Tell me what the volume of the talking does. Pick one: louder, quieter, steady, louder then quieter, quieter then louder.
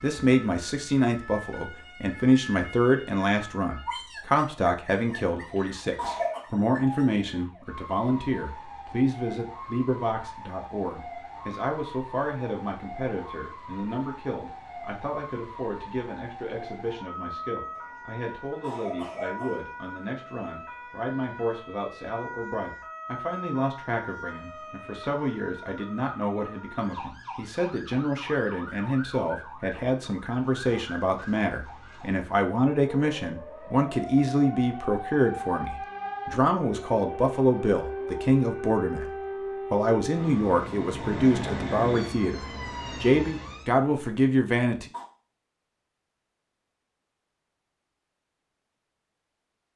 quieter then louder.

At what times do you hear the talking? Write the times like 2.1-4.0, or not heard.
0.0-44.9.